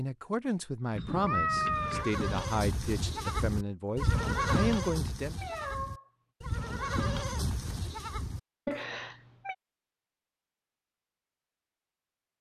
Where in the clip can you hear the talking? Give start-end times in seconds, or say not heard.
0.0-5.4.